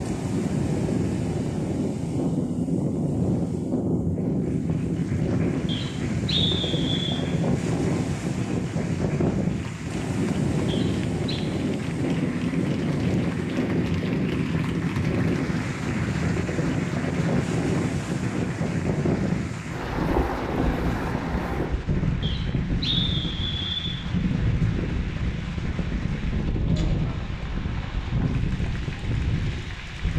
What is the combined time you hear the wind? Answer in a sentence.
The wind can be heard for 30 seconds in total.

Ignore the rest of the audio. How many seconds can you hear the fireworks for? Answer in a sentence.
You can't hear the fireworks here.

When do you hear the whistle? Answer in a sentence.
The whistle can be heard from 5.7 to 7.2 s, from 10.7 to 11.4 s and from 22.2 to 24.0 s.